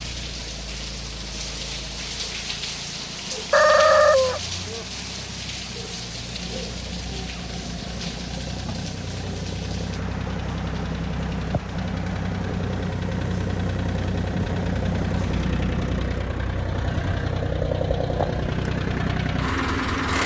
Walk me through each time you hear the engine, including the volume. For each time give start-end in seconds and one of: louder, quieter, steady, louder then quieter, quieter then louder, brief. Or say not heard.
0.0-20.2 louder.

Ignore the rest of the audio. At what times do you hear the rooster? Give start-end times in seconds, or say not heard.
3.5-4.8.